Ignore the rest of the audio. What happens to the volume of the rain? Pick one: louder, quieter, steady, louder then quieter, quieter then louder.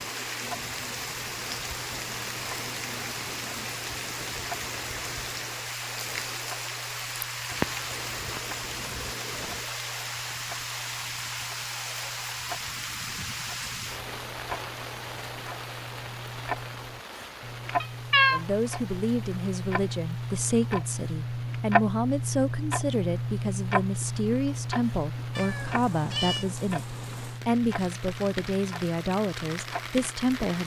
quieter then louder.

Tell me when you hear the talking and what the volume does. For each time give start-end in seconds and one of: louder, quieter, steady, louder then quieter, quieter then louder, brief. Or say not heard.
18.3-30.6 steady.